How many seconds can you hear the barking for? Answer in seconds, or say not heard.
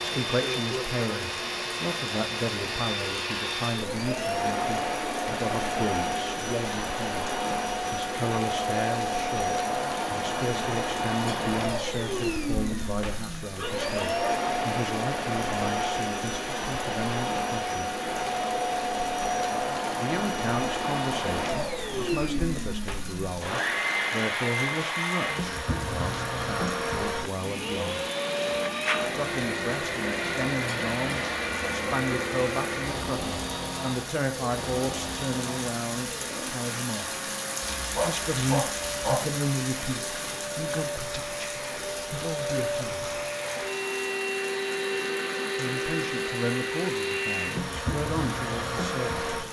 2 s.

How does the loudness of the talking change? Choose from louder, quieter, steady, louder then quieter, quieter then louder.
steady.